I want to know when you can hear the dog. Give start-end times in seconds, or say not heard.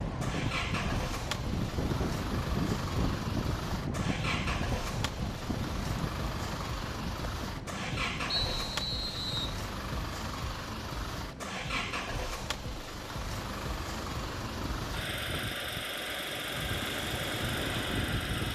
not heard.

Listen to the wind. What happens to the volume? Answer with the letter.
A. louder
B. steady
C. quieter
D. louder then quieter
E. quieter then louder
E.